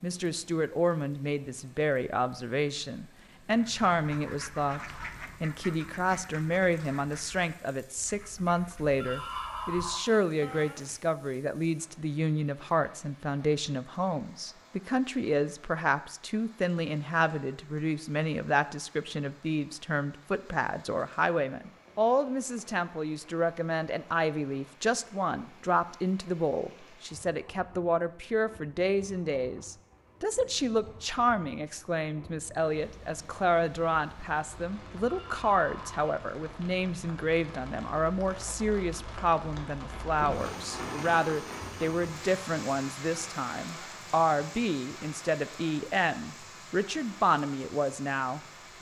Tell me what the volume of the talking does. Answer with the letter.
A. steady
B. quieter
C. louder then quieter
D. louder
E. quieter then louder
A.